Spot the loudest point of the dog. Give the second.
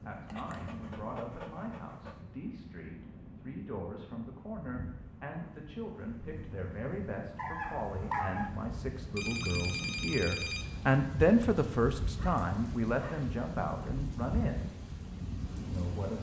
8 s.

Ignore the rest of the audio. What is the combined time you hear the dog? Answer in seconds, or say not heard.
4 s.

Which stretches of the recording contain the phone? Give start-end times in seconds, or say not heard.
9.2-10.7.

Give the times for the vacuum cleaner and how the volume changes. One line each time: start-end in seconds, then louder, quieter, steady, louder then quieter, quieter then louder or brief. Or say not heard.
not heard.